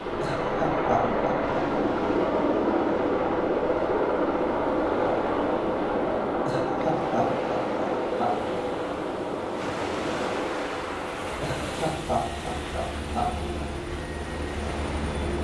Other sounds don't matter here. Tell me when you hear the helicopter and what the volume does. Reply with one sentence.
The helicopter can be heard from 0.0 to 15.3 s, getting quieter.